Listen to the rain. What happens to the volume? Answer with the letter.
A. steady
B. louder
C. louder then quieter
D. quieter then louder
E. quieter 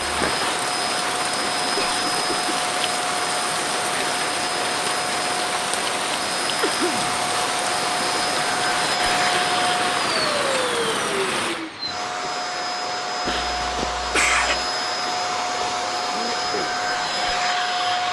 E.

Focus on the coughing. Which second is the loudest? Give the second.
14 s.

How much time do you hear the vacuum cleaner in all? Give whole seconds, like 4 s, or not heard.
18 s.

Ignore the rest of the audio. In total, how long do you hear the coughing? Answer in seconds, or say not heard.
3 s.